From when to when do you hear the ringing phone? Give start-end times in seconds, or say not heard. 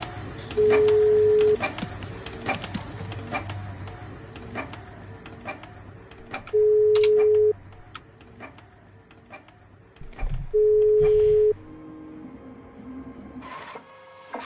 0.7-1.6, 6.5-7.5, 10.5-11.6.